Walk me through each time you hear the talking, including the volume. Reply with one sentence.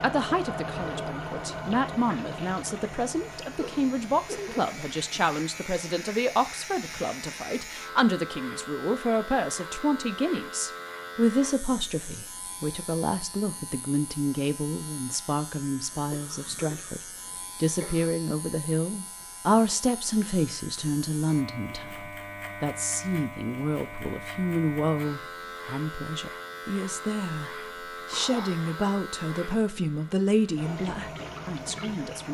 The talking can be heard from 0.0 to 32.3 s, at a steady volume.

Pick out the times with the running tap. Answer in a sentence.
You can hear the running tap from 0.0 to 7.7 s and from 30.6 to 32.3 s.